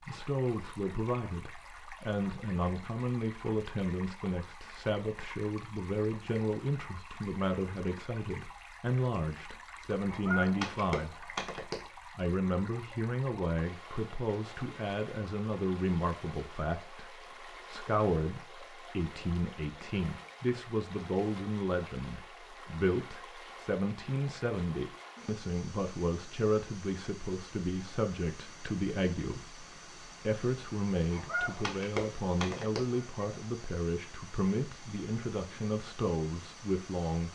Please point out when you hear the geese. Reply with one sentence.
You can hear the geese from 10.1 to 11.8 s and from 31.1 to 33.2 s.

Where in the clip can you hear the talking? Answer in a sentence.
The talking can be heard from 0.1 to 11.4 s and from 12.2 to 37.3 s.